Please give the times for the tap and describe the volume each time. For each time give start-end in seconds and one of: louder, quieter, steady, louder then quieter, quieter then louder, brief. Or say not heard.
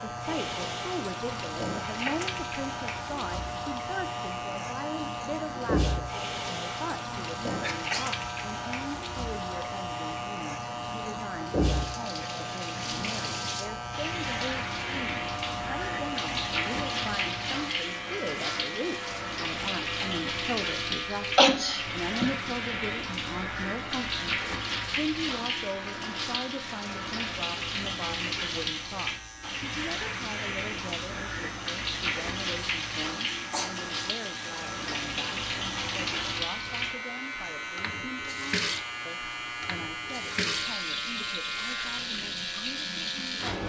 0.0-43.6 steady.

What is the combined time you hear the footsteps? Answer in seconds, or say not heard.
not heard.